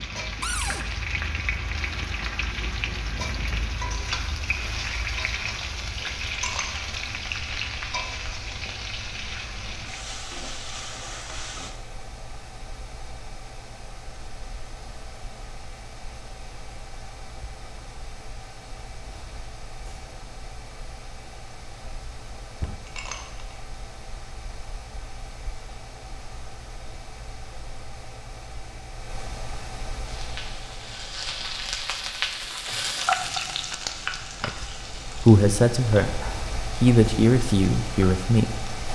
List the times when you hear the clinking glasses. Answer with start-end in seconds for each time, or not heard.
6.3-6.7, 22.9-23.4.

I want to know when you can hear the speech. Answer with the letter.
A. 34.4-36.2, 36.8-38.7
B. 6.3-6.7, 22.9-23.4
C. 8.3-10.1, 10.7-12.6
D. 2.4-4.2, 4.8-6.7
A.